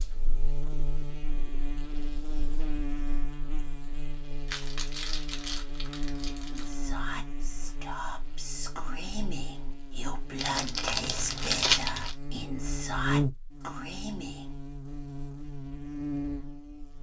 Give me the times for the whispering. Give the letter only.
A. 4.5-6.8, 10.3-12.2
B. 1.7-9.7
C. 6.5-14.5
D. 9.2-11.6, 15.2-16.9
C.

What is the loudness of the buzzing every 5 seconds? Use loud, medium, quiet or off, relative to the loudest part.
medium, medium, loud, loud.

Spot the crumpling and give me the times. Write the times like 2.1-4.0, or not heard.
4.5-6.8, 10.3-12.2.